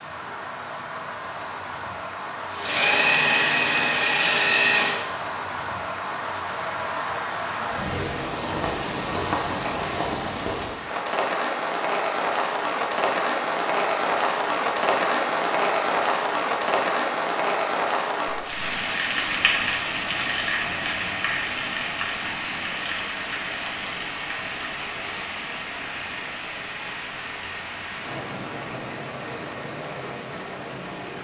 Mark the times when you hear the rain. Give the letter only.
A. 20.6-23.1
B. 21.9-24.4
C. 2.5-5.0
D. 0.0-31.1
D.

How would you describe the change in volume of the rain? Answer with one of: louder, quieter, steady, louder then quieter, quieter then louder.
louder then quieter.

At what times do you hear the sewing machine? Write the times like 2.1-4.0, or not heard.
2.5-5.0.